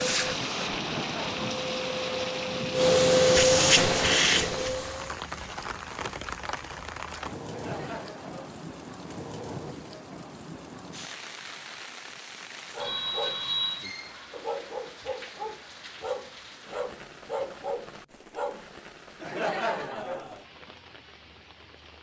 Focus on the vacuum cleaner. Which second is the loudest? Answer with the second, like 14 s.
3 s.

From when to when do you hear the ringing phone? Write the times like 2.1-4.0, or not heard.
12.8-13.9.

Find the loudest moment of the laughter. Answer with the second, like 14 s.
20 s.